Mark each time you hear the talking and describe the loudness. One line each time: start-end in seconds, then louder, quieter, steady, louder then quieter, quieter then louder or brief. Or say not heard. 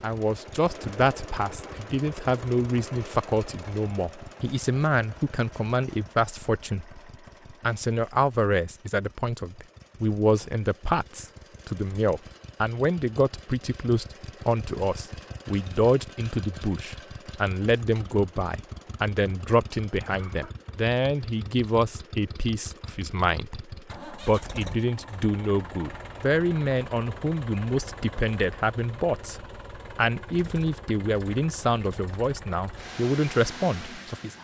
0.0-7.0 steady
7.6-34.3 steady.